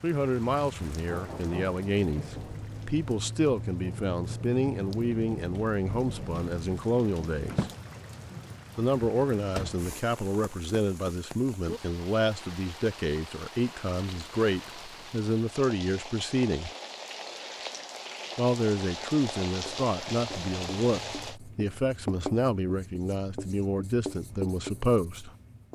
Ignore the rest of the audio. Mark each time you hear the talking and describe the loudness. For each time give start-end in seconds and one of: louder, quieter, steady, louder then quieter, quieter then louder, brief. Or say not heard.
0.0-7.7 steady
8.8-16.7 steady
18.4-25.3 steady.